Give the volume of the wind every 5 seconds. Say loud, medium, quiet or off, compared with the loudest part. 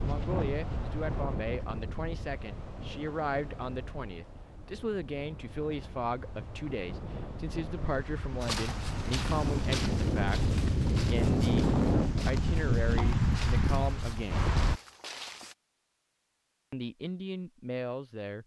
medium, medium, loud, off.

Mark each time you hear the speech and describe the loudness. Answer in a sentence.
The speech can be heard from 0.0 to 14.4 s, at a steady volume; and briefly from 16.7 to 18.4 s.